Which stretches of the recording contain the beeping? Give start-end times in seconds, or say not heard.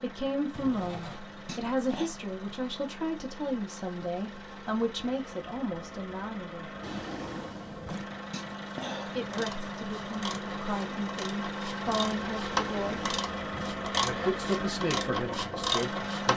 not heard.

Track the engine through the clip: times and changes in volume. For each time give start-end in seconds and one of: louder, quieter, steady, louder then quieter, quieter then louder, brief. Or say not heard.
0.0-16.3 louder.